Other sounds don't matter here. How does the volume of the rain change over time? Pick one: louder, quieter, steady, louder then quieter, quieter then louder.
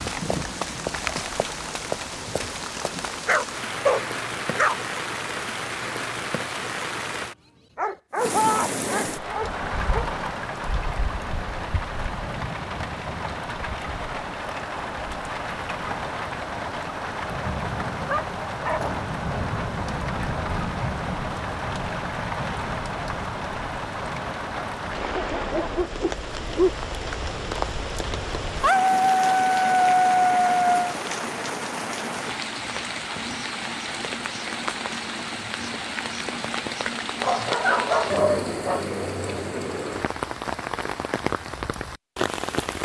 steady.